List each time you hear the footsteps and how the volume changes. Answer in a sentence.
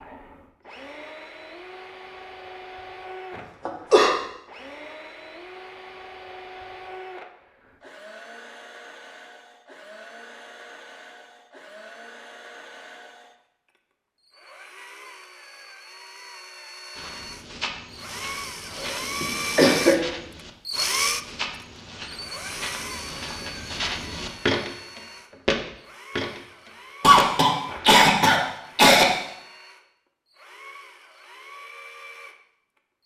You can hear the footsteps from 16.9 to 27.9 s, getting louder.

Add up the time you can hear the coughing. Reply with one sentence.
You can hear the coughing for 3 seconds altogether.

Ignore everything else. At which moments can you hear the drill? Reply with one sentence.
You can hear the drill from 0.0 to 33.0 s.